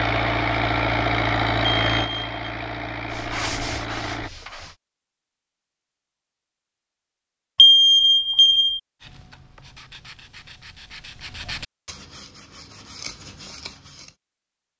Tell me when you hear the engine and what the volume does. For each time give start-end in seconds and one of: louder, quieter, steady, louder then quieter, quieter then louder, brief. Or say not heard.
0.0-4.3 quieter.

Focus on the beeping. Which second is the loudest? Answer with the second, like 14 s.
8 s.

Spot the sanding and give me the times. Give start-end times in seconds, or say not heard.
3.0-4.8, 9.0-14.2.